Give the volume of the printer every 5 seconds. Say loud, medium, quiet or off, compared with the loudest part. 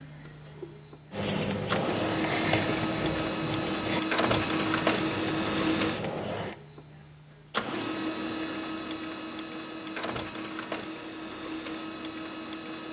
loud, loud, medium.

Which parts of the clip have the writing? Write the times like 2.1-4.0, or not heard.
1.1-6.5.